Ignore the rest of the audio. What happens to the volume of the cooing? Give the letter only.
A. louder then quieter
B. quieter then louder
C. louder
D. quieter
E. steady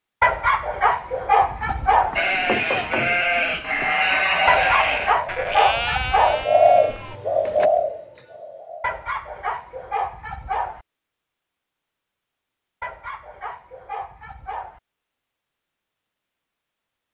A.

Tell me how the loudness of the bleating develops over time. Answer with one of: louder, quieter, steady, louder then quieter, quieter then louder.
quieter.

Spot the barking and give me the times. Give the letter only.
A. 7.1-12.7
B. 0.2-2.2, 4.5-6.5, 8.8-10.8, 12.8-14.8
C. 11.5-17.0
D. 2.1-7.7
B.